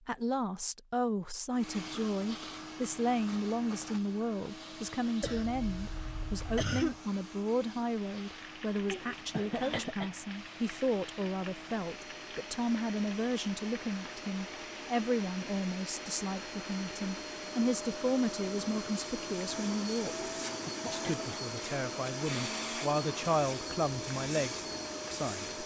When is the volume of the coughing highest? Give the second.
7 s.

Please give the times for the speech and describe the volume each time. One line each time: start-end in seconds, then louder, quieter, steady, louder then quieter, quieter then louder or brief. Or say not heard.
0.1-25.4 steady.